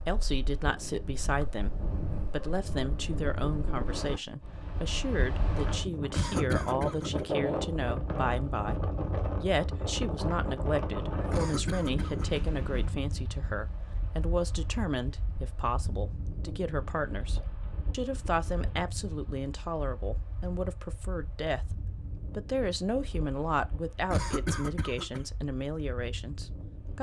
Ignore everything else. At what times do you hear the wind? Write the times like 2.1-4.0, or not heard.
0.0-26.9.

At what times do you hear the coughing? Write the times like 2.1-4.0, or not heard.
6.1-7.2, 11.3-12.4, 24.1-25.2.